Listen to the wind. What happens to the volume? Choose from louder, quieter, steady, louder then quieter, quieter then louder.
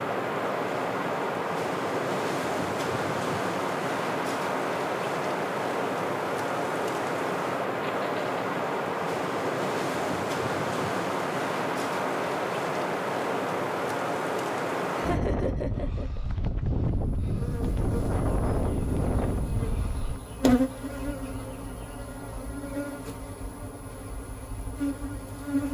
steady.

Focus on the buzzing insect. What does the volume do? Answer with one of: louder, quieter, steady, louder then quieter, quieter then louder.
louder then quieter.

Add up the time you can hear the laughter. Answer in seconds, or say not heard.
2 s.